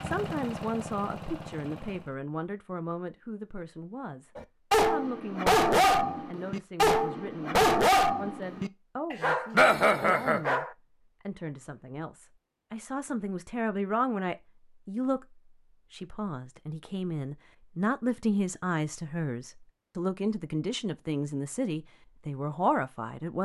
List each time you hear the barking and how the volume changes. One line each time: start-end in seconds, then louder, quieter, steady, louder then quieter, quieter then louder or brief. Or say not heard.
4.3-10.7 quieter then louder.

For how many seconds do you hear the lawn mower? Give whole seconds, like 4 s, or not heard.
2 s.